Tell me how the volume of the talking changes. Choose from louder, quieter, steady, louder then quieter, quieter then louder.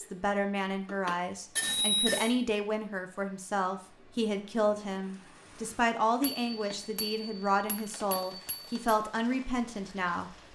steady.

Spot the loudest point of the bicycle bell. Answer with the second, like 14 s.
2 s.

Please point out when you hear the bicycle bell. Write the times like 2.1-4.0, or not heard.
0.8-2.4, 6.2-8.8.